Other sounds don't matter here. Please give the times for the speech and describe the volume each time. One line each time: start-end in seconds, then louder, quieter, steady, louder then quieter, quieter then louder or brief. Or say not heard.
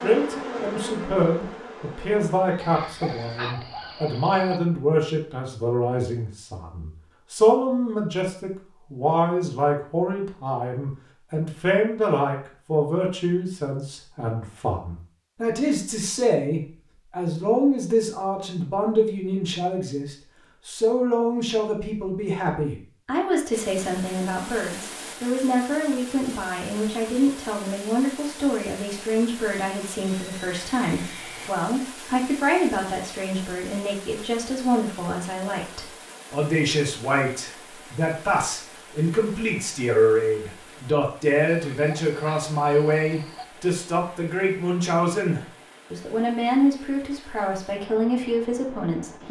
0.0-49.2 steady.